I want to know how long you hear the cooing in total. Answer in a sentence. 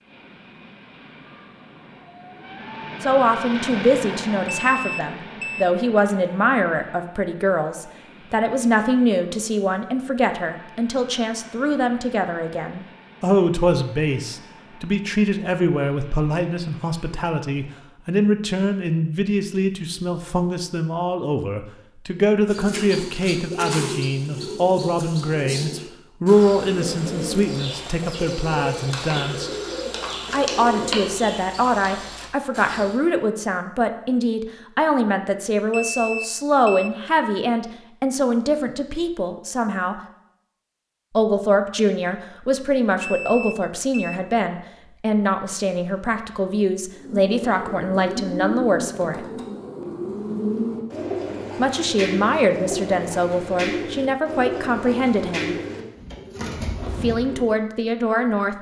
The cooing can be heard for 21 seconds in total.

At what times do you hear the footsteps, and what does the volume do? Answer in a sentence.
The footsteps can't be heard in this clip.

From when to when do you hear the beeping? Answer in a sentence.
The beeping can be heard from 4.7 to 5.7 s, from 35.6 to 36.9 s and from 43.0 to 44.1 s.